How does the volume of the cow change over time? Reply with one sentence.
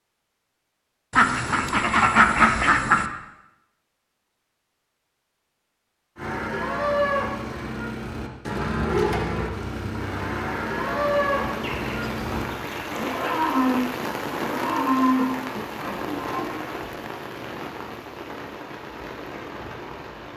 The volume of the cow stays about the same.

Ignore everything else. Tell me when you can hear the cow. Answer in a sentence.
You can hear the cow from 6.2 to 16.6 s.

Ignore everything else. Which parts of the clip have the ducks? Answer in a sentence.
The ducks can be heard from 1.1 to 3.1 s and from 11.6 to 13.2 s.